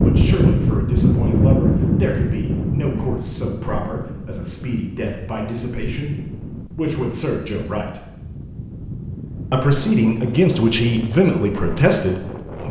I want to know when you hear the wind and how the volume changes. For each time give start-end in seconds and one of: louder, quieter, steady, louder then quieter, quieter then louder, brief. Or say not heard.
0.0-12.6 quieter.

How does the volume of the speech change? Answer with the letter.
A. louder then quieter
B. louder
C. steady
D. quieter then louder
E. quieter
B.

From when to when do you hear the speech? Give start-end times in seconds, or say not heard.
0.0-8.0, 9.5-12.6.